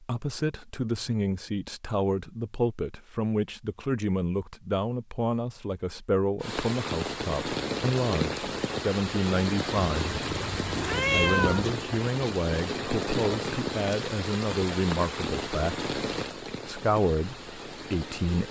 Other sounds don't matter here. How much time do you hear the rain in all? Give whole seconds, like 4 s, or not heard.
12 s.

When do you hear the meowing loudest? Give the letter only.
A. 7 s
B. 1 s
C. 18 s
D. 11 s
D.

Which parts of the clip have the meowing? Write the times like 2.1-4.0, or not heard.
9.9-11.8.